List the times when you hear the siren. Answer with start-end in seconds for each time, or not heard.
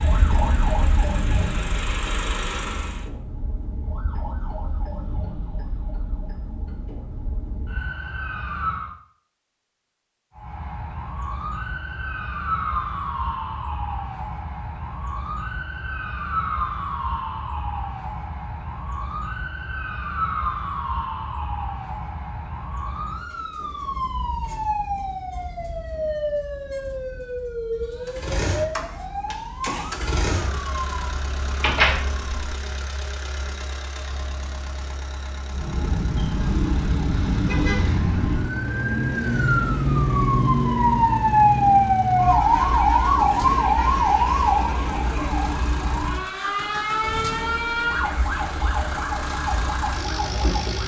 0.0-8.9, 10.3-32.7, 35.5-50.8.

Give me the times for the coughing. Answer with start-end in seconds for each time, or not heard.
not heard.